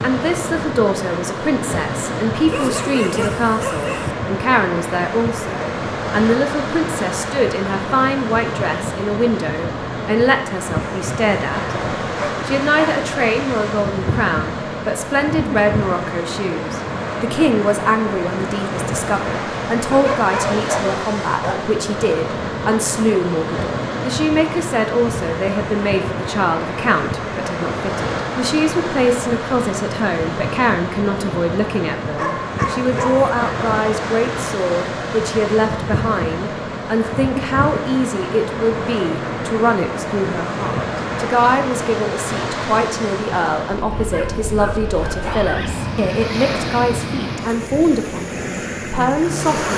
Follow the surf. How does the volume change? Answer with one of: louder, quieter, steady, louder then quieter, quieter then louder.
steady.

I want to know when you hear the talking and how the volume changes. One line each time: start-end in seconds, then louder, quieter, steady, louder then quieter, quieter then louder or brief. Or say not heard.
0.0-11.6 steady
12.4-49.7 steady.